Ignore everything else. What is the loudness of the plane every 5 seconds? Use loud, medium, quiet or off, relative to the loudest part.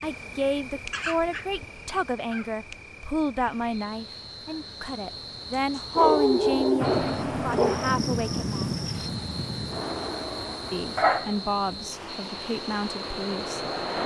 off, loud, medium.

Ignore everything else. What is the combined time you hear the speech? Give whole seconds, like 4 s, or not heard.
12 s.